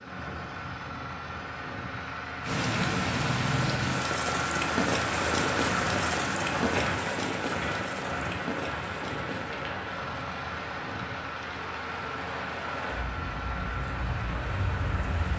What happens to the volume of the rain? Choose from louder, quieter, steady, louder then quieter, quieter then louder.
quieter.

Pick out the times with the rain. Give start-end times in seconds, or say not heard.
2.4-15.3.